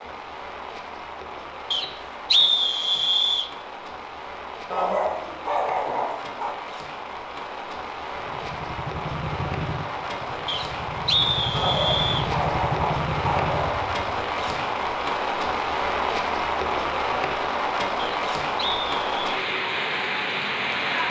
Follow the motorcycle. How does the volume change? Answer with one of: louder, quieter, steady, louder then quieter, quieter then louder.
quieter then louder.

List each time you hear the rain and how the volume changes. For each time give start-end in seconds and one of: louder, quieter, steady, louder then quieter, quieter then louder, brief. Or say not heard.
0.0-21.0 louder.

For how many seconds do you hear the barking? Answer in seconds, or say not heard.
4 s.